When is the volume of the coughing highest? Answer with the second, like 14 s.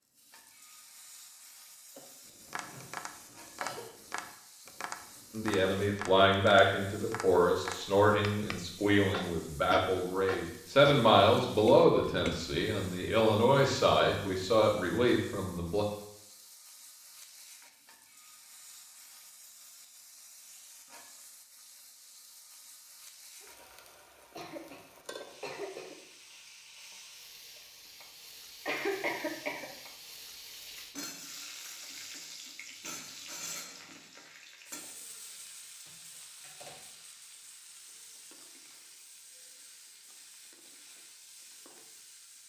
29 s.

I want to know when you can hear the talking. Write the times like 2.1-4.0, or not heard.
5.3-15.8.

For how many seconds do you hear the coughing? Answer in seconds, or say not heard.
5 s.